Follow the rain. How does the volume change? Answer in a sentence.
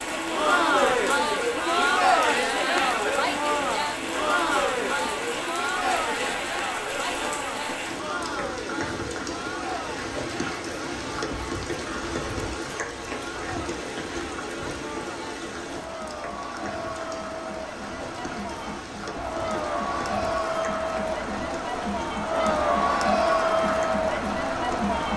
The loudness of the rain goes down.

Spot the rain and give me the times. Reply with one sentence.
You can hear the rain from 0.0 to 25.1 s.